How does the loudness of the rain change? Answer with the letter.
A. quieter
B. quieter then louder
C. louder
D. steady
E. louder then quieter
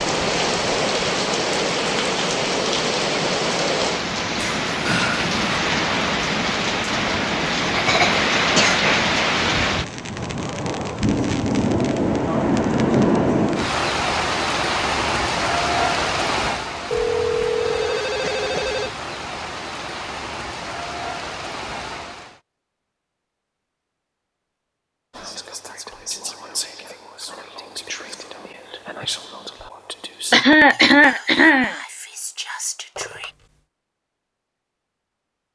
A.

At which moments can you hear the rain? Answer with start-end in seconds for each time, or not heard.
0.0-22.4.